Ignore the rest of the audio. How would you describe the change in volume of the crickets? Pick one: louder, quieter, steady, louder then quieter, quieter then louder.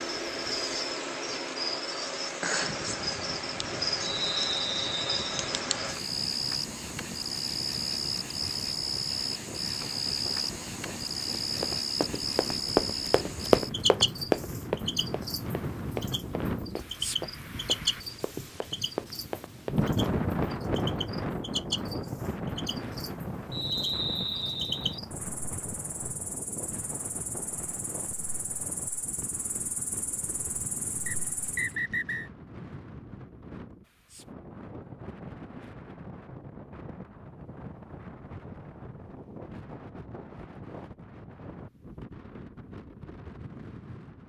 quieter.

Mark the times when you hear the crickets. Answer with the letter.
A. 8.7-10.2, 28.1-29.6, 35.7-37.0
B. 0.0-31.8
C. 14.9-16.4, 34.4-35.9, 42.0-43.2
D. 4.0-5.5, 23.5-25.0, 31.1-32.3
B.